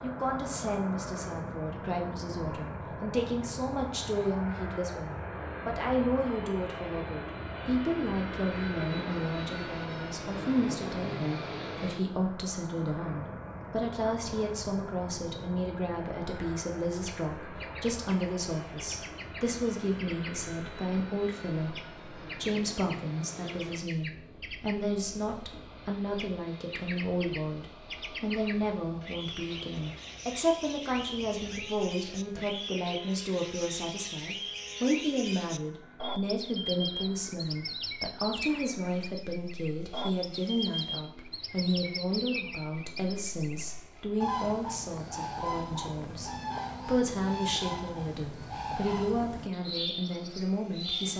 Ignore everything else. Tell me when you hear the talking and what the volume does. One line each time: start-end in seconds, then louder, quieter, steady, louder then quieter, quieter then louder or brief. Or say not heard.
0.0-51.1 steady.